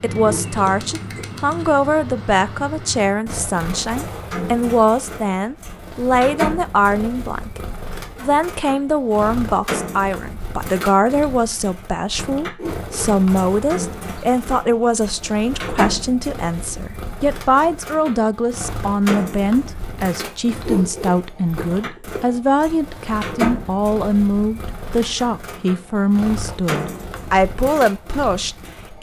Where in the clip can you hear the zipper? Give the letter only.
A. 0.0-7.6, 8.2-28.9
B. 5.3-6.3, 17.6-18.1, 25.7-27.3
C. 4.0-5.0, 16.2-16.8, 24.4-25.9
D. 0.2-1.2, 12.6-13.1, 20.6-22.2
D.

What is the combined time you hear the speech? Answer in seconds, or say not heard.
28 s.